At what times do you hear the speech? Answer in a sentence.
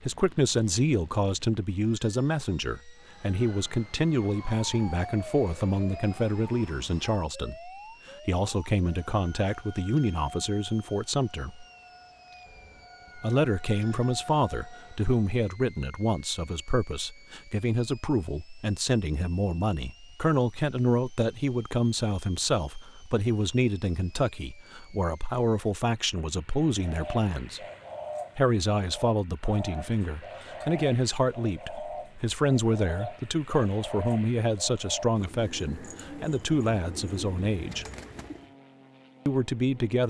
You can hear the speech from 0.1 to 11.7 s, from 13.2 to 27.6 s, from 28.4 to 37.9 s and from 39.2 to 40.0 s.